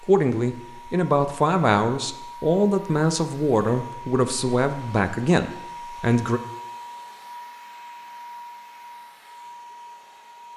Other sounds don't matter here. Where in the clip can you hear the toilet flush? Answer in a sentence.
You can't hear the toilet flush here.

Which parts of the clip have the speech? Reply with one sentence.
You can hear the speech from 0.0 to 6.4 s.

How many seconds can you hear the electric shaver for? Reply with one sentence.
You can't hear the electric shaver here.